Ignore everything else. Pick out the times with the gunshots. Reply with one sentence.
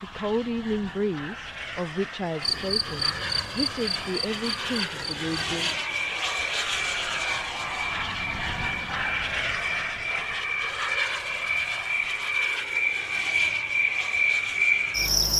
You can't hear the gunshots here.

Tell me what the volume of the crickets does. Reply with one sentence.
The loudness of the crickets goes up.